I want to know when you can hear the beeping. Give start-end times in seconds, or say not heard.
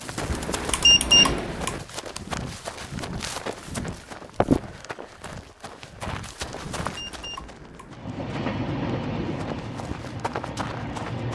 0.2-1.8, 6.4-7.9.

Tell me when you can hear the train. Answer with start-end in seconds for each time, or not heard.
0.0-1.7, 7.9-11.3.